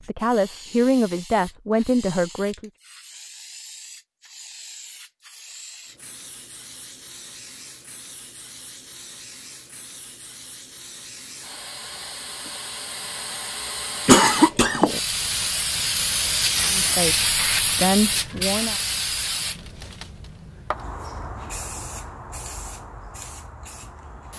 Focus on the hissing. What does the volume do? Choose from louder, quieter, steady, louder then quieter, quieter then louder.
louder then quieter.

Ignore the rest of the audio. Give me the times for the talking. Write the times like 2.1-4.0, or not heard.
0.1-2.7, 16.7-18.8.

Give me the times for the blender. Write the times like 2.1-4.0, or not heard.
not heard.